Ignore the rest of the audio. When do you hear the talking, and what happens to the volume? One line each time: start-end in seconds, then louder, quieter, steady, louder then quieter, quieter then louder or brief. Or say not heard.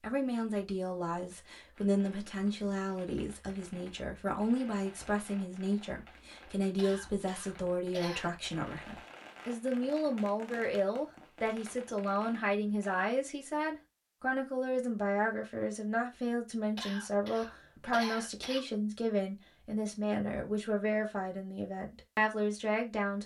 0.0-23.2 steady.